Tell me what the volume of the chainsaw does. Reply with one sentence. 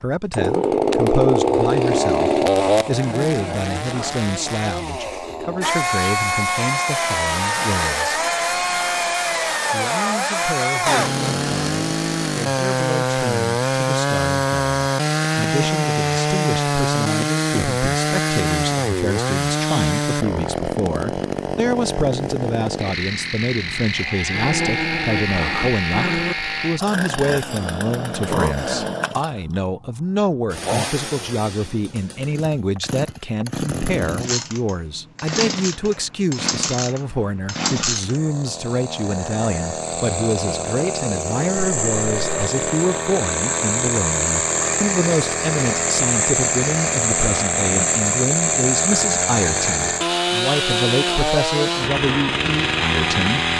The volume of the chainsaw goes down, then up.